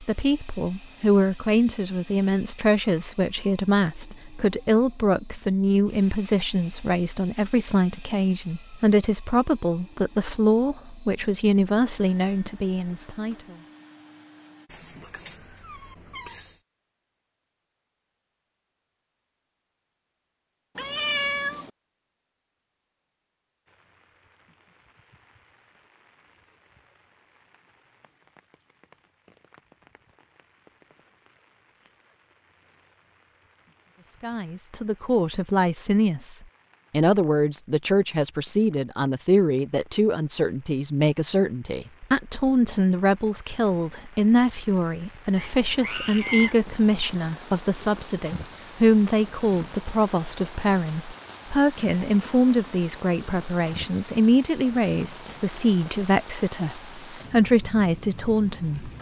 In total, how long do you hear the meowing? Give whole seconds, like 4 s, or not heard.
4 s.